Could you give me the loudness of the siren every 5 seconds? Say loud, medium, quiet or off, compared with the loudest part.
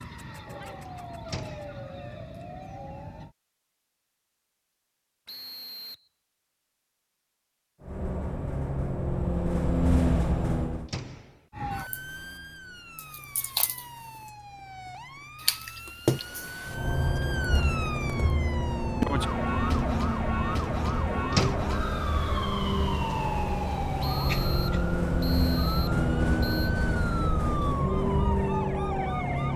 medium, off, medium, loud, loud, loud.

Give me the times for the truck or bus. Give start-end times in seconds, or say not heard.
7.8-10.9, 16.6-29.5.